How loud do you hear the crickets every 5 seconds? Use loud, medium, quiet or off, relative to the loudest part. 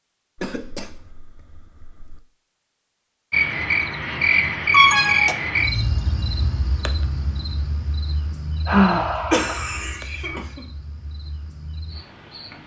loud, medium, quiet.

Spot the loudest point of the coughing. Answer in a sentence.
The loudest moment of the coughing is at 5 seconds.